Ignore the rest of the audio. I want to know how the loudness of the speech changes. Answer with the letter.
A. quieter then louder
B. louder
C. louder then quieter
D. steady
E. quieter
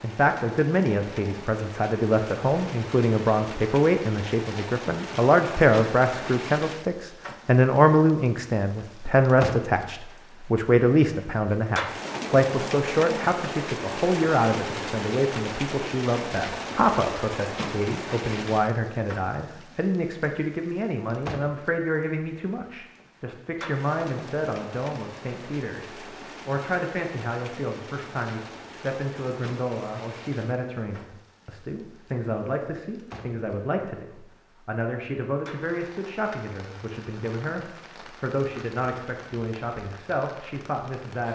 E.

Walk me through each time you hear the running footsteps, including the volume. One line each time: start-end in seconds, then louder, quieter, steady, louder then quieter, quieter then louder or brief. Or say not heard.
not heard.